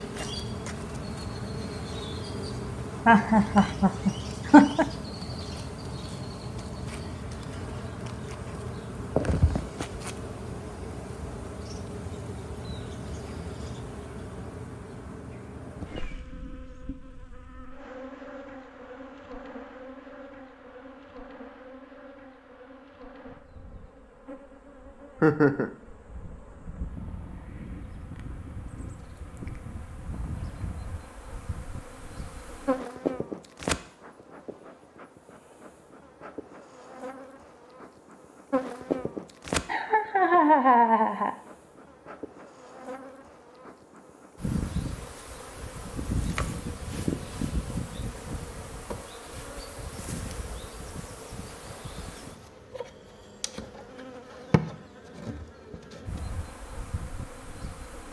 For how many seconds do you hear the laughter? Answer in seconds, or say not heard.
4 s.